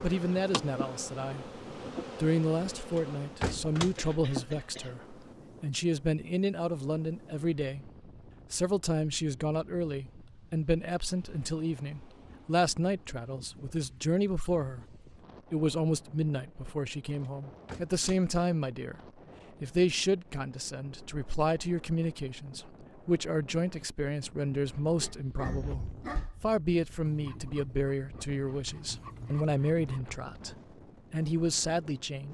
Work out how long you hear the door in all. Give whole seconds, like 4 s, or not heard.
3 s.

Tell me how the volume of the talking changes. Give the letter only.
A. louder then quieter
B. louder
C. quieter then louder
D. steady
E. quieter
D.